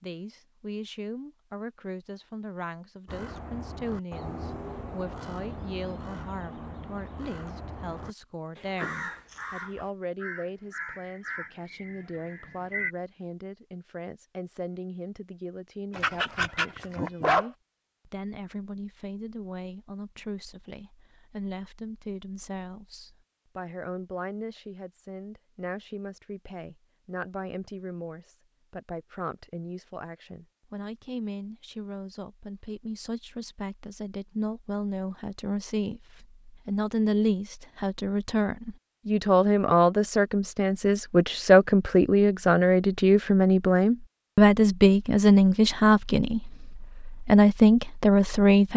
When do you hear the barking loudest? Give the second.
17 s.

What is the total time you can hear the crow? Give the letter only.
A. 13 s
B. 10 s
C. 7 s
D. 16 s
B.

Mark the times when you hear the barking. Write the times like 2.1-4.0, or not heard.
15.9-17.5.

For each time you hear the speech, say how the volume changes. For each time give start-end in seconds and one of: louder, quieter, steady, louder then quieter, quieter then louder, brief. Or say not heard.
0.0-48.7 louder.